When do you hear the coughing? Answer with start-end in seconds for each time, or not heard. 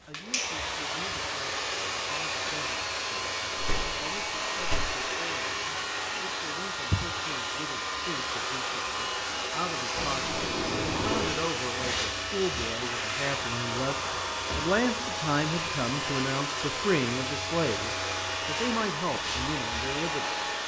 not heard.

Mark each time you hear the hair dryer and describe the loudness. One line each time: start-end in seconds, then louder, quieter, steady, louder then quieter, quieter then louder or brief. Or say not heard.
0.0-20.6 steady.